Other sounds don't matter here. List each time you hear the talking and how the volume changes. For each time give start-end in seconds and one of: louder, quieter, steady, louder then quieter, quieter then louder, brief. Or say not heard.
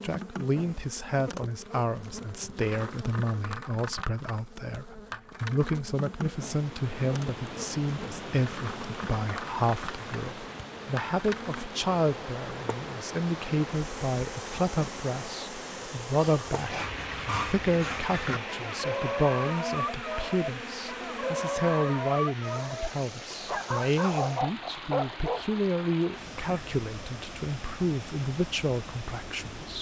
0.0-29.7 steady.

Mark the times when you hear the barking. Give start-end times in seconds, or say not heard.
16.1-25.4.